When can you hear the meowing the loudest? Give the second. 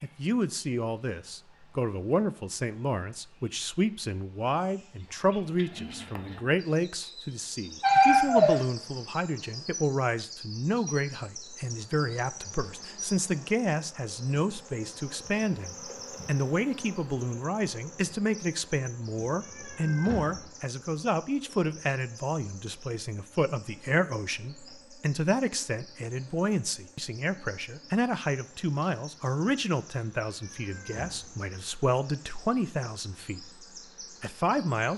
8 s.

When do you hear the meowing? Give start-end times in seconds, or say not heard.
7.8-8.6, 19.1-20.4, 30.3-31.3.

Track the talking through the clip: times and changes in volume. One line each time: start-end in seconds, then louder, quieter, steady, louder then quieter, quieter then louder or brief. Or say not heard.
0.0-34.9 steady.